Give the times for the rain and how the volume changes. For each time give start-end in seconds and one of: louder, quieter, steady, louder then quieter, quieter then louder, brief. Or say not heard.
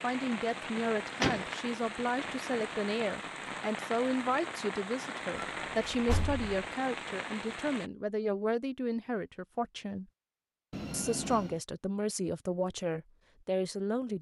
0.0-7.9 steady.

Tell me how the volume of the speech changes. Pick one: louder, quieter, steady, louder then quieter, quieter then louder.
steady.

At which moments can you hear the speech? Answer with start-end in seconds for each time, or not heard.
0.0-10.1, 10.9-14.1.